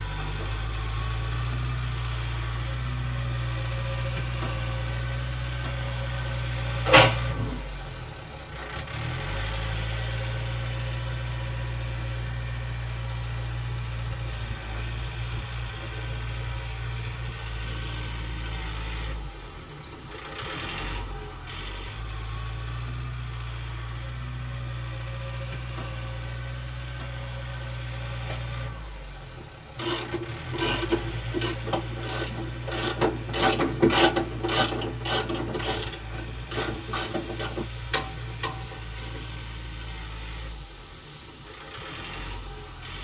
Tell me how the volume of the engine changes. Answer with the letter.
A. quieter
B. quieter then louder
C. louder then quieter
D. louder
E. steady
A.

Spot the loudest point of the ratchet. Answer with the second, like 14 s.
34 s.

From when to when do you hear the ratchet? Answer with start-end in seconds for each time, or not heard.
29.4-39.4.